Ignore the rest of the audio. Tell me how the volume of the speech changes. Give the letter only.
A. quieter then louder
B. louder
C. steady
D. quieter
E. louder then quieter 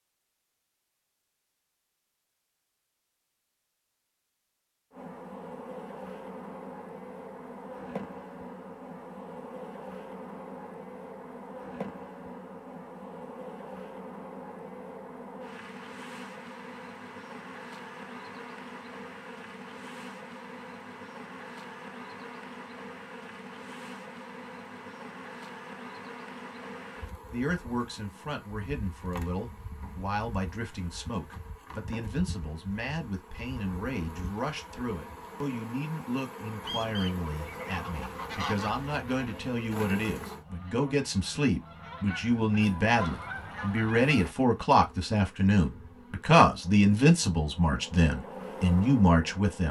B.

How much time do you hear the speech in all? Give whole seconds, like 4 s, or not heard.
22 s.